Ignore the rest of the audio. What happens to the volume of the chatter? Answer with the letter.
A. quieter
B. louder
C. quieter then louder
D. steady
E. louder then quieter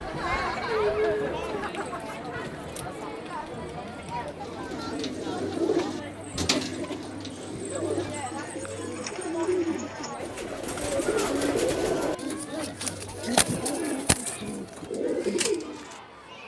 A.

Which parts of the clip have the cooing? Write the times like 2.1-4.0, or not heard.
4.5-15.9.